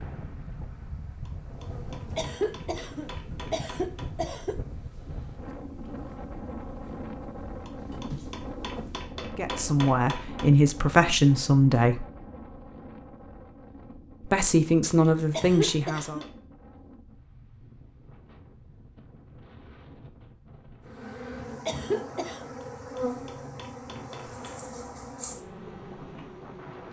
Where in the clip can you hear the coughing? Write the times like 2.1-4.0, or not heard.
2.1-4.6, 15.3-16.3, 21.6-22.4.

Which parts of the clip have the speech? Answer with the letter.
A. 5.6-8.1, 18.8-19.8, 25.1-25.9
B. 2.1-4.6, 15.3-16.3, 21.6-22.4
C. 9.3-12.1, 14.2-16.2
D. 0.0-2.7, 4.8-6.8
C.